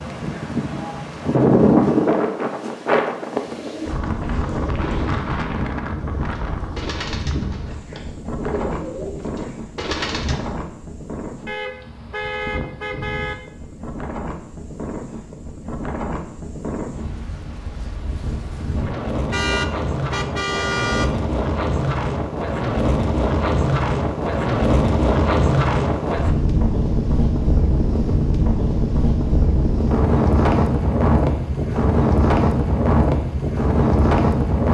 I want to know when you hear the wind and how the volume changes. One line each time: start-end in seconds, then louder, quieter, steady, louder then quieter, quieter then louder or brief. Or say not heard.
0.0-34.6 quieter then louder.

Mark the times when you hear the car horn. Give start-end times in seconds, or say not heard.
11.4-13.3, 19.3-21.1.